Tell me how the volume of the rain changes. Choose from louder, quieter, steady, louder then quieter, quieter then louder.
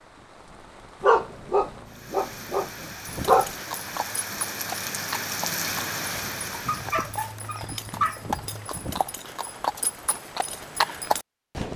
louder.